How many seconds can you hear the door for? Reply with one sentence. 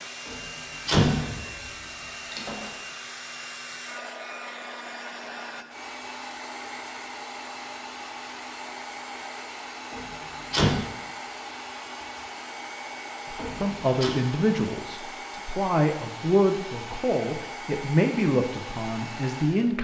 The door can be heard for 3 seconds in total.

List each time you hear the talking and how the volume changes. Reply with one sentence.
You can hear the talking from 13.3 to 19.7 s, at a steady volume.